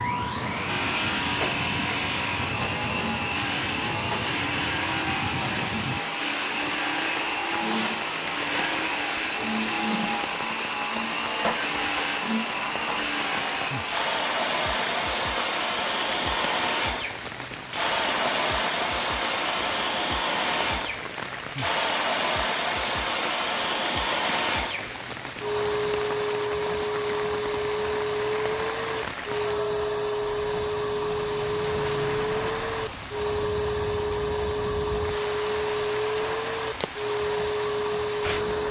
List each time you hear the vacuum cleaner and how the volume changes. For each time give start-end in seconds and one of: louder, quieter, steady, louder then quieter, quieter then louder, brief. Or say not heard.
0.0-38.6 steady.